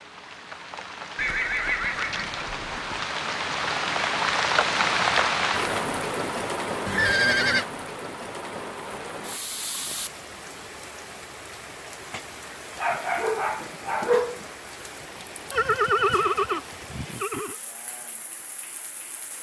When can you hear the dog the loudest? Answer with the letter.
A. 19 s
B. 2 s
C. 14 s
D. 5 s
C.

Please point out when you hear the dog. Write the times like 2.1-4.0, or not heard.
12.8-14.5.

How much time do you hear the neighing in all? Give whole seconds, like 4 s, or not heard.
5 s.